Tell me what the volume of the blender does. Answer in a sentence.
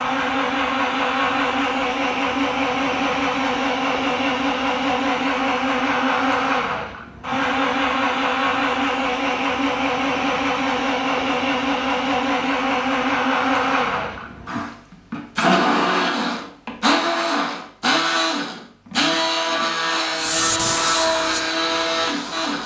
The volume of the blender stays about the same.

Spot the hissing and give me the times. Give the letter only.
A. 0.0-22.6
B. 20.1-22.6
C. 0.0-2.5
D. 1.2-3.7
B.